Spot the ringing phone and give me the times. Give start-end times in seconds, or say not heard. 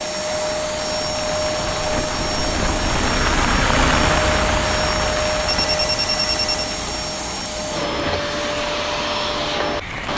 5.5-6.8.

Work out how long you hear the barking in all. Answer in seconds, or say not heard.
not heard.